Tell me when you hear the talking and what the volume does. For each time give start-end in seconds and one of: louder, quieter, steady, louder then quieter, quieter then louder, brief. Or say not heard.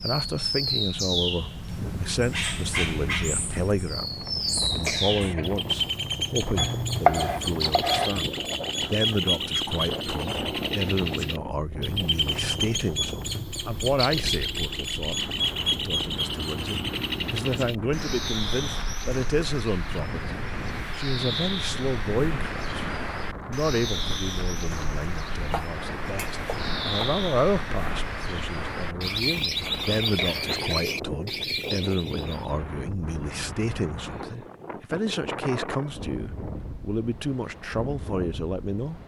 0.0-39.0 steady.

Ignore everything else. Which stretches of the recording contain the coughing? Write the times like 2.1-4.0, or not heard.
4.8-5.5, 30.1-30.9.